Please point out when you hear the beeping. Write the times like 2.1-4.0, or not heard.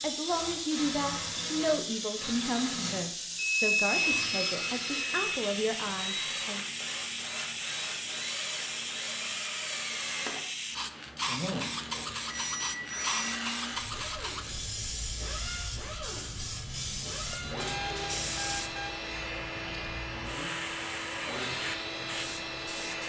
3.4-5.4, 12.3-13.4, 17.6-18.9.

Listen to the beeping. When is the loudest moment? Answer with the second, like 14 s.
4 s.